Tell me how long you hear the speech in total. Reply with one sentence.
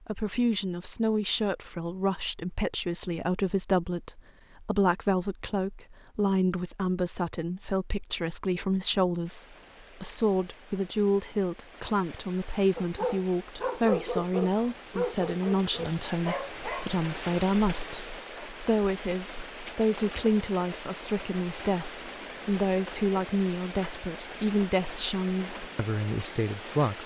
The speech can be heard for 27 seconds in total.